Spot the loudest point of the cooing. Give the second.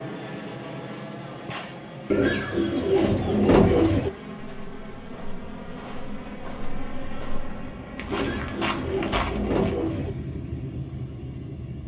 4 s.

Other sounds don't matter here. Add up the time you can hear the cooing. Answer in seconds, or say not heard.
4 s.